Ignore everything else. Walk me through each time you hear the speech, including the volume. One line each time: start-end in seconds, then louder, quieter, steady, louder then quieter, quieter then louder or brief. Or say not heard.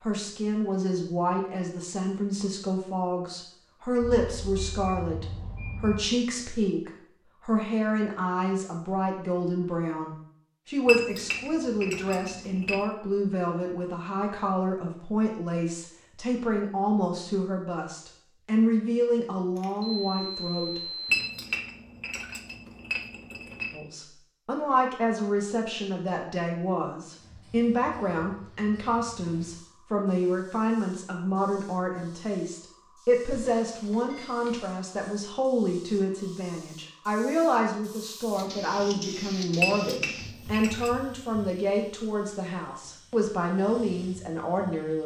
0.0-21.1 steady
23.7-45.0 steady.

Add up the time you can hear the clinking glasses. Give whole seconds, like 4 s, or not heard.
6 s.